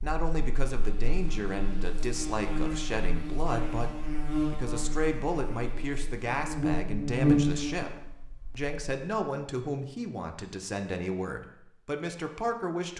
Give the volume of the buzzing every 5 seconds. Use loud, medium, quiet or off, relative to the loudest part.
medium, loud, off.